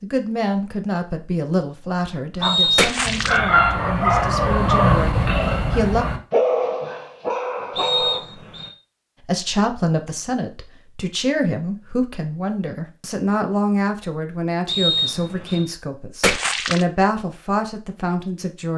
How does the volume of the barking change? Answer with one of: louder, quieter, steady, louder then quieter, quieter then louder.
quieter.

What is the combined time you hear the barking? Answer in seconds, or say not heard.
6 s.